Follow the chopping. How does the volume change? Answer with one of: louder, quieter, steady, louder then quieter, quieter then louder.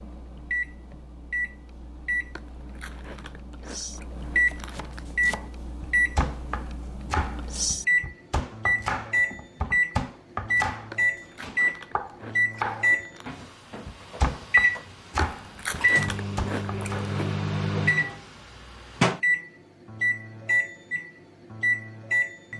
steady.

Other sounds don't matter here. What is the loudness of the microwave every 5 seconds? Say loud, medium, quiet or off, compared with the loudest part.
medium, loud, loud, loud, loud.